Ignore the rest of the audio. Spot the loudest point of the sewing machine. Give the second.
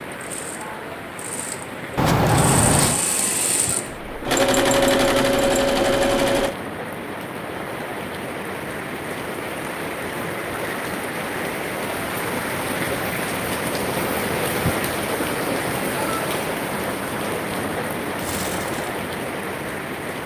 5 s.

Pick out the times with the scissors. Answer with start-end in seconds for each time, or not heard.
1.9-3.0.